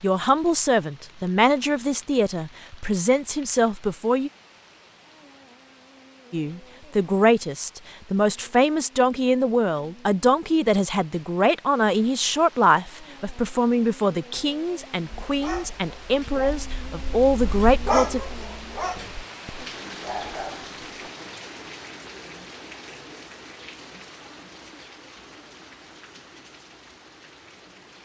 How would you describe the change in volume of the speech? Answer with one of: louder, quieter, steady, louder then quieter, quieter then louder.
steady.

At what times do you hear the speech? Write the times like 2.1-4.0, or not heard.
0.0-4.3, 6.3-18.2.